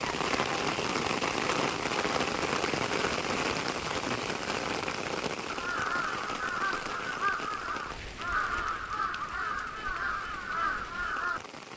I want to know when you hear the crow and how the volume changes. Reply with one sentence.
You can hear the crow from 5.5 to 11.4 s, at a steady volume.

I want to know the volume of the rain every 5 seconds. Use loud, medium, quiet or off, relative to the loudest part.
loud, medium, quiet.